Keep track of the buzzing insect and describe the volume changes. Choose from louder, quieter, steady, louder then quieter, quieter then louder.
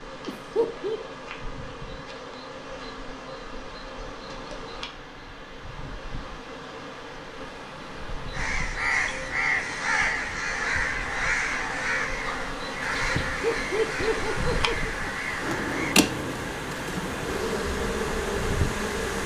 louder.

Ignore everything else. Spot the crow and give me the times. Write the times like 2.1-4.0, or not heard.
8.3-15.9.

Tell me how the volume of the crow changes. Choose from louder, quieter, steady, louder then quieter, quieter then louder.
quieter.